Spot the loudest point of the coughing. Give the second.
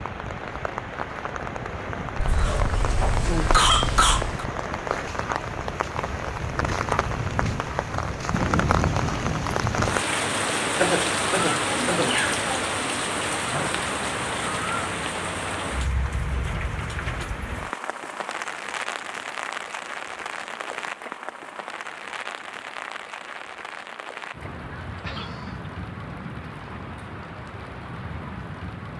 4 s.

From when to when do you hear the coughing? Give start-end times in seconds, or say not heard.
2.1-4.5, 10.8-12.2, 24.9-25.7.